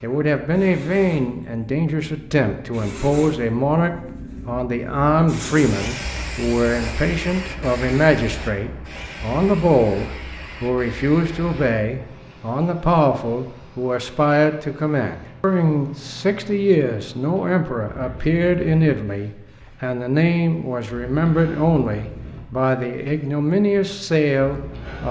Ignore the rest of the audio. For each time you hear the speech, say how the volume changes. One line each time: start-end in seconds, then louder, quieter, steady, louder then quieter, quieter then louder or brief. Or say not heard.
0.0-25.0 steady.